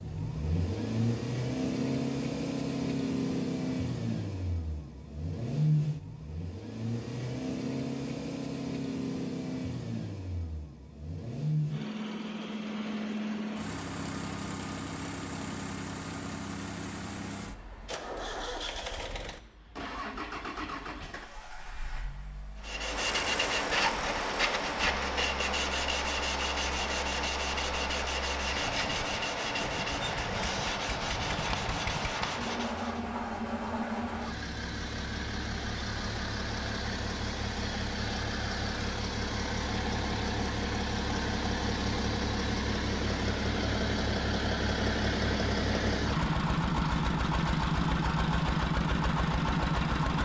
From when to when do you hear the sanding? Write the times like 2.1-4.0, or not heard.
22.6-33.1.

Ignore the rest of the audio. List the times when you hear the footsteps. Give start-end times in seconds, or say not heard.
not heard.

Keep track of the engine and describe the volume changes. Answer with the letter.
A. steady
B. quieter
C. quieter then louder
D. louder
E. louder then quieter
C.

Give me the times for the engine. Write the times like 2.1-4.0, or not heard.
0.0-50.2.